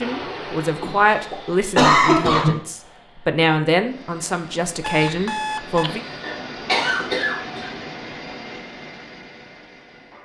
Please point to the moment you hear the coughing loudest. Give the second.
2 s.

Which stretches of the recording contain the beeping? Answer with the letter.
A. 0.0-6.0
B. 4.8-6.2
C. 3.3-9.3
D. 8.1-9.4
B.